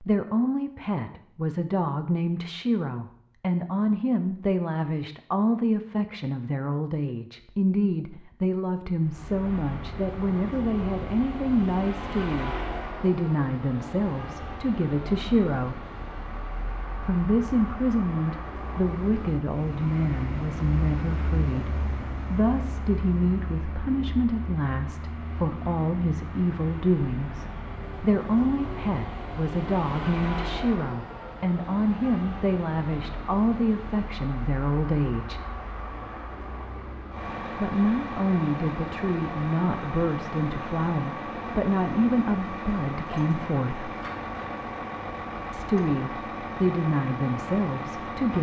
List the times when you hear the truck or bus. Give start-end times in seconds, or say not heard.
8.9-48.3.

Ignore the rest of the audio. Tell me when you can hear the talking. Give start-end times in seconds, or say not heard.
0.0-15.8, 17.0-35.4, 37.5-44.0, 45.5-48.3.